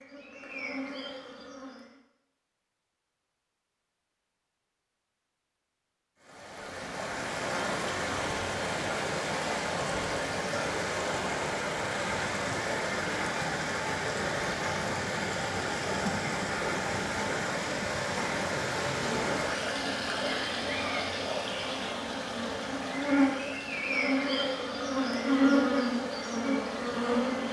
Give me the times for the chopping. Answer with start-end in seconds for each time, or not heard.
not heard.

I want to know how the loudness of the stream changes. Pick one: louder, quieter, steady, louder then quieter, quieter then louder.
quieter.